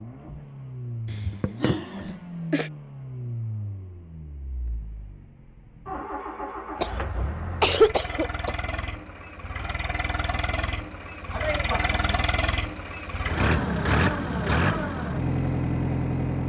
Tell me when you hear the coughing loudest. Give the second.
8 s.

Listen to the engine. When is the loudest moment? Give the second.
14 s.